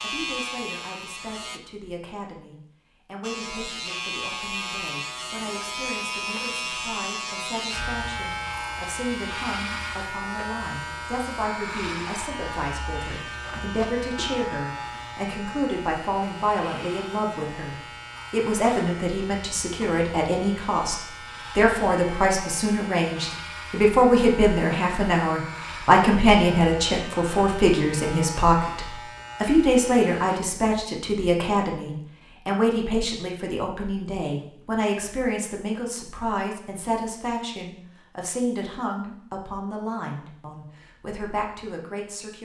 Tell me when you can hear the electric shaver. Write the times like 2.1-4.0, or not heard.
0.0-1.6, 3.2-30.4.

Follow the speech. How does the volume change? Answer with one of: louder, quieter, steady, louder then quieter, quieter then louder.
louder then quieter.